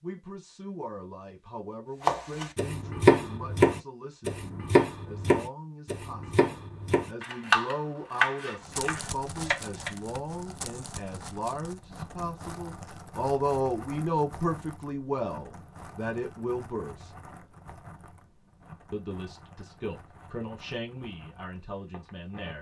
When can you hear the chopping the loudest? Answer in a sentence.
The loudest moment of the chopping is at 3 seconds.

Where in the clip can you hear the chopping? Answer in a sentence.
The chopping can be heard from 2.0 to 9.9 s.